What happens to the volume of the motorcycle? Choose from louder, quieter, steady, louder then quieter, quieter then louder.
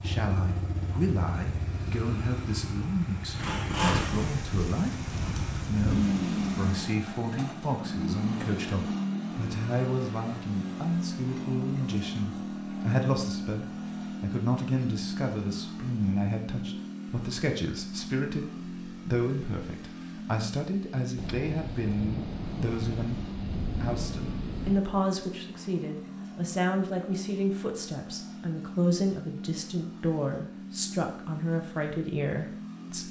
quieter.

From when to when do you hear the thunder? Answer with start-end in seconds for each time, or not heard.
4.0-6.8, 21.1-24.9.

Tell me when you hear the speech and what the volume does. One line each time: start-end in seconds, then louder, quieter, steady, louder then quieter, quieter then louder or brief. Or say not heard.
0.0-33.0 steady.